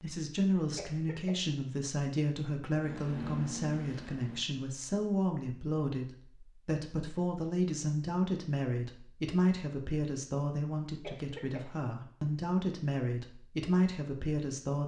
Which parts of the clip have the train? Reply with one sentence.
The train can be heard from 2.8 to 4.5 s.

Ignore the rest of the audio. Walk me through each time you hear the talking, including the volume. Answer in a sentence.
You can hear the talking from 0.0 to 14.8 s, at a steady volume.